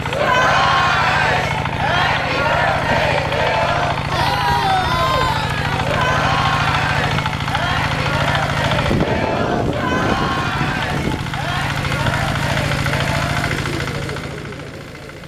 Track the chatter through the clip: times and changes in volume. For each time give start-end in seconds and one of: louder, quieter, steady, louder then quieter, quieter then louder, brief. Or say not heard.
0.0-15.2 quieter.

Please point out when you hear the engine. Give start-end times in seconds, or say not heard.
0.0-15.2.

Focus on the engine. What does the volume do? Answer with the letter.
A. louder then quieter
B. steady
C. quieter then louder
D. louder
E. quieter
B.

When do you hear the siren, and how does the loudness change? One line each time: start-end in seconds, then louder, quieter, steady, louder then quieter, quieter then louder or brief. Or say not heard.
not heard.